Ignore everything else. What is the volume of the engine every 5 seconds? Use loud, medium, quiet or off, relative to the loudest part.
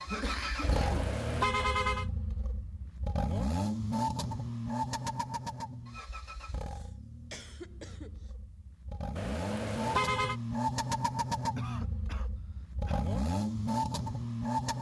loud, medium, loud.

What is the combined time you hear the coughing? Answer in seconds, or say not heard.
5 s.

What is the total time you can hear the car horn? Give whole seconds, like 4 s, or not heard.
3 s.